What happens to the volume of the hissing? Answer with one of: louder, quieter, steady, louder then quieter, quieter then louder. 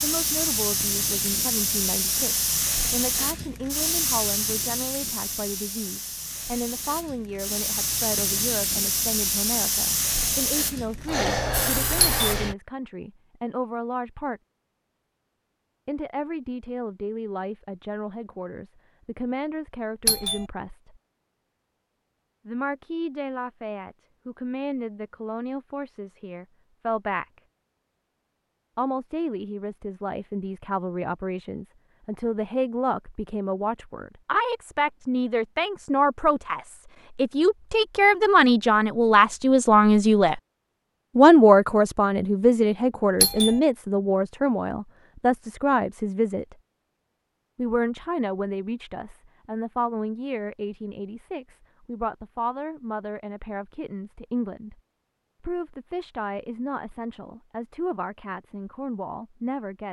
quieter then louder.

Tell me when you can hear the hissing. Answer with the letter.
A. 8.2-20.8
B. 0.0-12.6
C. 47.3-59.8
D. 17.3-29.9
B.